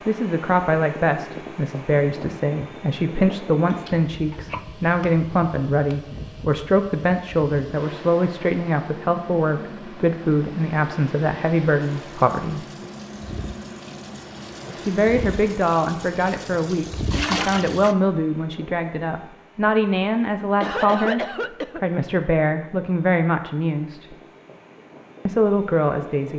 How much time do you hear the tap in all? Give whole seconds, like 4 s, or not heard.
6 s.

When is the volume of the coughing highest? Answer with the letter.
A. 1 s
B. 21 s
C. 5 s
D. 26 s
B.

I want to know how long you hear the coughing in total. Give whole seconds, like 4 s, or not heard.
2 s.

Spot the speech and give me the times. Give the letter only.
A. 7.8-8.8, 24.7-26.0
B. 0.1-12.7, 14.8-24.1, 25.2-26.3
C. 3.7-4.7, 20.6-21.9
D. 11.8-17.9
B.